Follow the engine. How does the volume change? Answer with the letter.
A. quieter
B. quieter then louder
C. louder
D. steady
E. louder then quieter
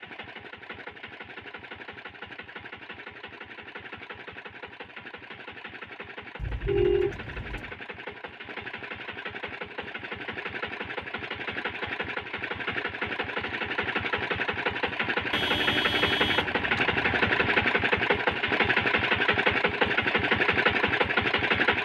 C.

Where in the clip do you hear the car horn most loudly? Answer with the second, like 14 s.
7 s.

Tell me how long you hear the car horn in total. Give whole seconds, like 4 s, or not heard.
4 s.